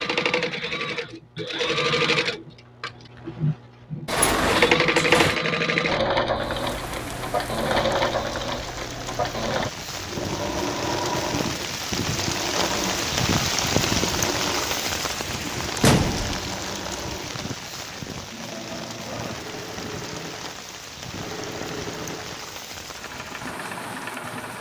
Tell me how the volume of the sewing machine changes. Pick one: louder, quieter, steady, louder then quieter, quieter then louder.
quieter.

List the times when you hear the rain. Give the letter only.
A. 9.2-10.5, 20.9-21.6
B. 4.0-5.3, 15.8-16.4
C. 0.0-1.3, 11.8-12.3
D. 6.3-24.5
D.